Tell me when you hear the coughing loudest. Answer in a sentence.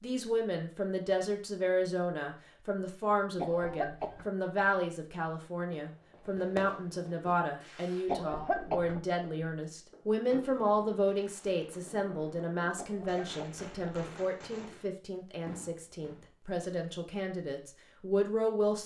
The loudest moment of the coughing is at 9 seconds.